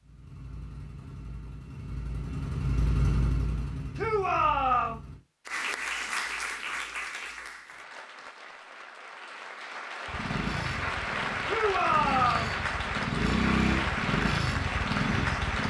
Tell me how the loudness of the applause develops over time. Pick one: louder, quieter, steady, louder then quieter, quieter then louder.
quieter then louder.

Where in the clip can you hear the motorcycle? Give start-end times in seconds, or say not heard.
0.0-5.2, 10.1-15.6.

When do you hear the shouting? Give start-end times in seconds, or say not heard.
4.0-5.0, 11.4-12.6.